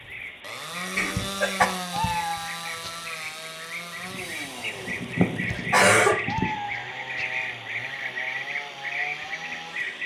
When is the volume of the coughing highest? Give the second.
6 s.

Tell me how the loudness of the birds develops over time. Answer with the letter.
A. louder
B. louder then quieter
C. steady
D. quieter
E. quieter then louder
A.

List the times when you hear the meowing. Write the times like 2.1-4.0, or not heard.
1.1-3.1, 5.5-7.5.